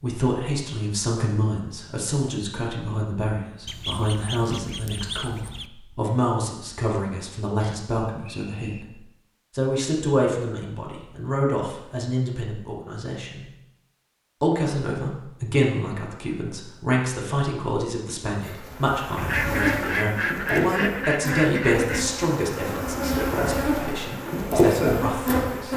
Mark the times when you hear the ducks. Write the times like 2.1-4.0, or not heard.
3.6-5.7, 19.1-22.1.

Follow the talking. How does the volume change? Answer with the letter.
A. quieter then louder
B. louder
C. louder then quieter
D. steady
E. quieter
D.